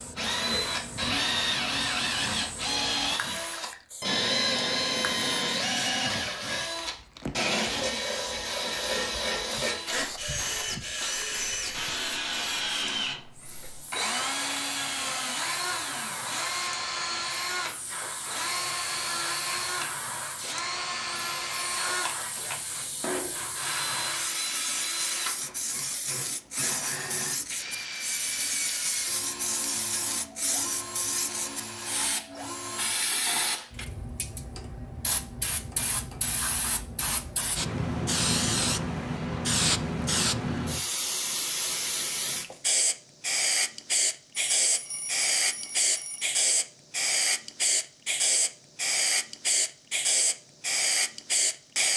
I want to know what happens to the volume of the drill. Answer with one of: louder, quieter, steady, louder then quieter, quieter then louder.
quieter.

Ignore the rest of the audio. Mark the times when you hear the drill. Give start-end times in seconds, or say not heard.
0.0-33.9.